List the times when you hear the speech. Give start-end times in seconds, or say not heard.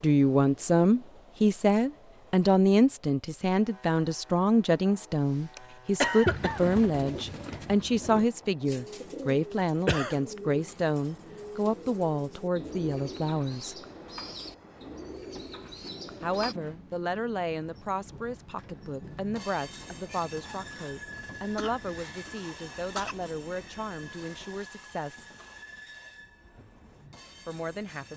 0.0-13.8, 16.2-25.2, 27.4-28.1.